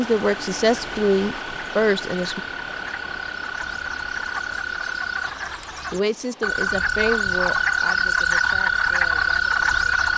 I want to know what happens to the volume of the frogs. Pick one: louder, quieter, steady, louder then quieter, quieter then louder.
louder.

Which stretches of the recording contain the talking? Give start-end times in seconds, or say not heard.
0.0-2.4, 5.9-10.1.